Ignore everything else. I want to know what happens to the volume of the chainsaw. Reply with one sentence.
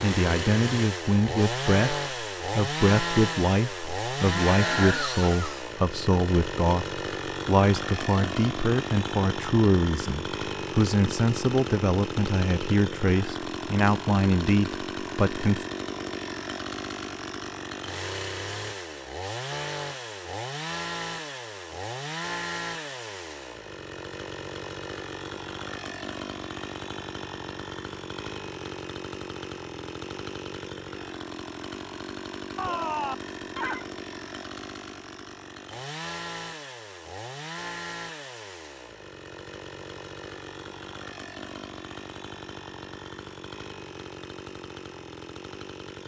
The volume of the chainsaw goes down.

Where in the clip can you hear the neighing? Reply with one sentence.
You can hear the neighing from 4.4 to 5.7 s and from 32.5 to 33.9 s.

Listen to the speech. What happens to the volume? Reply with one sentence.
The loudness of the speech stays about the same.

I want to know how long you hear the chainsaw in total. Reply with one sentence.
You can hear the chainsaw for 46 seconds altogether.